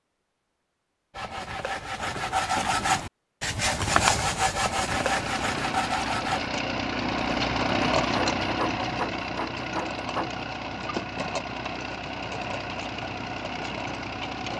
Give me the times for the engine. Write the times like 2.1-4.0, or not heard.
4.7-14.5.